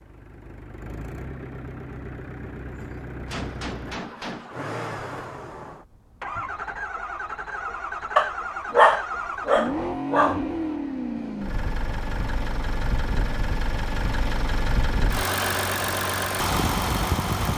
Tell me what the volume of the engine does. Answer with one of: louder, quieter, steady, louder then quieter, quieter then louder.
louder.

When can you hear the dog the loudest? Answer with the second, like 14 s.
9 s.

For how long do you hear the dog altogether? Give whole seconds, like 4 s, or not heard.
2 s.